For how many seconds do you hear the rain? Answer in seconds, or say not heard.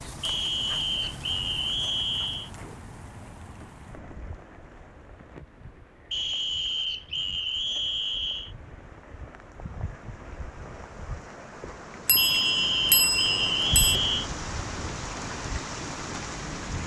17 s.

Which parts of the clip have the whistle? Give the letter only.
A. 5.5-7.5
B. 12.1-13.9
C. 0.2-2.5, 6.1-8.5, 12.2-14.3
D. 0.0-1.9
C.